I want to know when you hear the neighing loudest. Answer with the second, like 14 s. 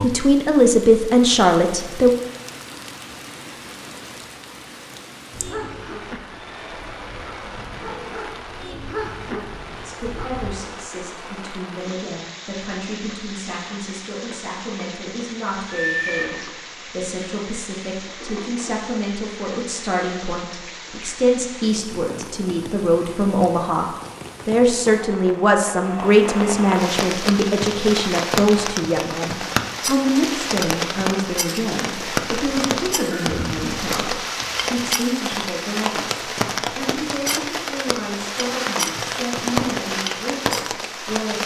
16 s.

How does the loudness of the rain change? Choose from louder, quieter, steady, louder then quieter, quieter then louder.
louder.